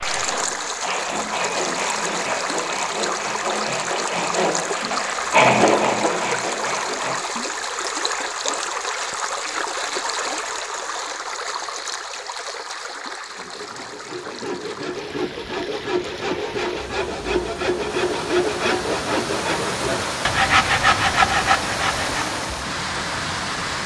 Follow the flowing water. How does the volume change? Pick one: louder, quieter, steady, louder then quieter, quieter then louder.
quieter then louder.